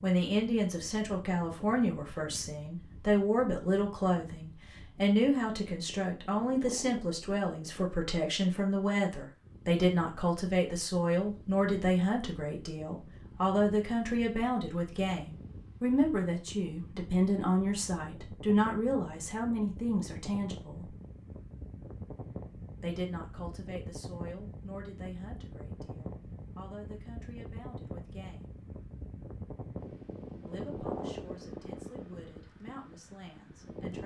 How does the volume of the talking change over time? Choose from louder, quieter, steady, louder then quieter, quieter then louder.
quieter.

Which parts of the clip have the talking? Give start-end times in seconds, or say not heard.
0.0-20.9, 22.8-28.6, 30.4-34.0.